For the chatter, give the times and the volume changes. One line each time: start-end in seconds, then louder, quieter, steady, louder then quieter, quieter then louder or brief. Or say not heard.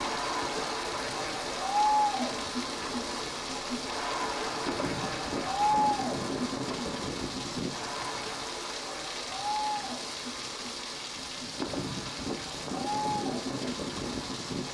0.0-14.6 quieter.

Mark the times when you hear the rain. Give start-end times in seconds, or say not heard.
0.0-14.6.